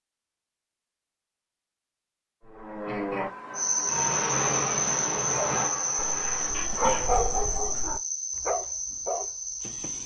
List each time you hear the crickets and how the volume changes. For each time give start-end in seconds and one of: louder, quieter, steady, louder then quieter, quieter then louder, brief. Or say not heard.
3.5-10.0 quieter.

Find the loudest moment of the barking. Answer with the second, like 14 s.
7 s.